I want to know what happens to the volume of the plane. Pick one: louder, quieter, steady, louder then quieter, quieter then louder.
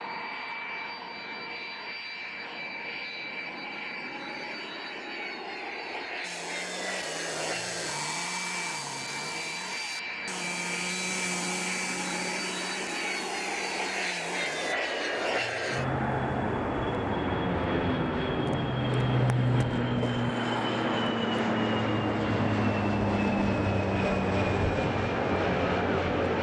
louder.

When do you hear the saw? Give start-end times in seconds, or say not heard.
6.2-14.8.